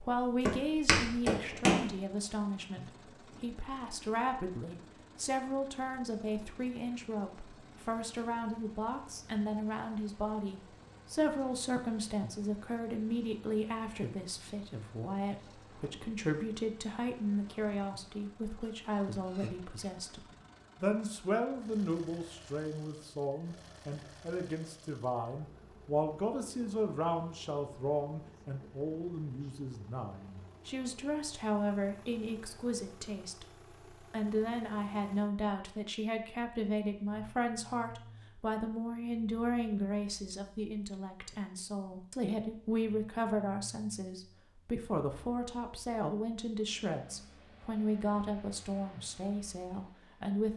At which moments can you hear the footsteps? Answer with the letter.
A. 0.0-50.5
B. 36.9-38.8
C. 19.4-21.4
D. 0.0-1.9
D.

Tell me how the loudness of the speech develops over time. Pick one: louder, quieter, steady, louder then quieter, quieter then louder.
steady.